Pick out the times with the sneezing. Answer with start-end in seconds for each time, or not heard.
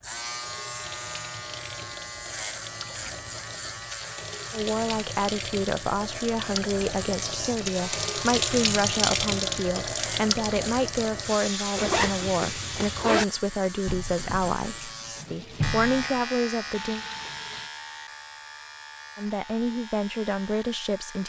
not heard.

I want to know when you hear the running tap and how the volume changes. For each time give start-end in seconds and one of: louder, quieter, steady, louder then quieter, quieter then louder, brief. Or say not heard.
0.0-17.7 louder then quieter.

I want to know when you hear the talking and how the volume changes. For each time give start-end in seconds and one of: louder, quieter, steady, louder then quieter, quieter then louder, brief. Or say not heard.
4.5-17.1 steady
19.1-21.2 brief.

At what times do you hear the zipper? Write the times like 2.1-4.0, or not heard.
11.8-13.2.